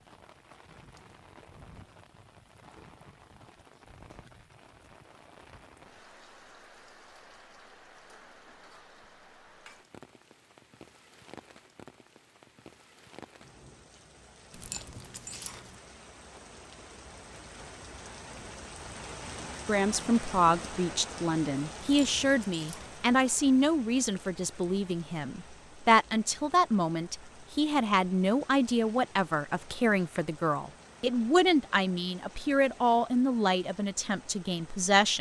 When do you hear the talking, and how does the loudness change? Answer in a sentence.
You can hear the talking from 19.6 to 35.1 s, at a steady volume.